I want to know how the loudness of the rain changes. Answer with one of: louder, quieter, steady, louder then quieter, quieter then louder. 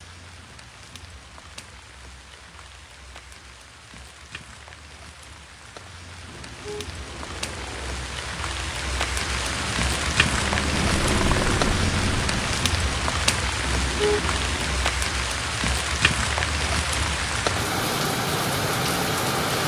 louder.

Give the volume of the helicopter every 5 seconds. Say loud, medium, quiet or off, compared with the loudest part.
off, quiet, loud, off.